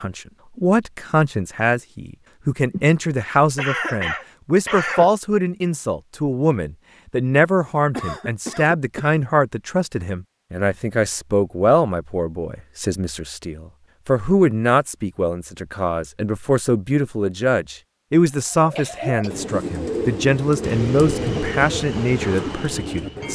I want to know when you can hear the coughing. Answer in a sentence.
The coughing can be heard from 2.7 to 5.1 s, from 7.9 to 9.2 s and from 18.7 to 19.4 s.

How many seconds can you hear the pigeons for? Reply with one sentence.
The pigeons can be heard for 5 seconds in total.